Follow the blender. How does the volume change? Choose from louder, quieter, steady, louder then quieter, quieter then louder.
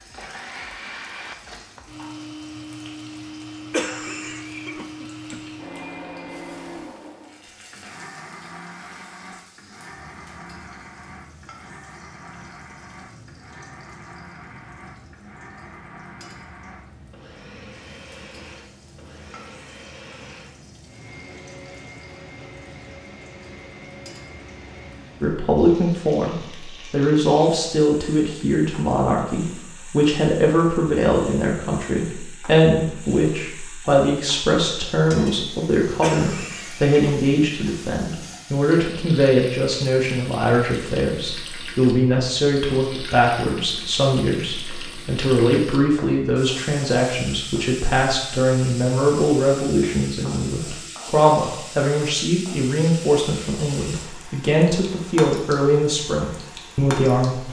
quieter.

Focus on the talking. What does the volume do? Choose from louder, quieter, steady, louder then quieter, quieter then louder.
steady.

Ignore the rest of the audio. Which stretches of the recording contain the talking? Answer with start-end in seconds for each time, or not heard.
25.2-57.4.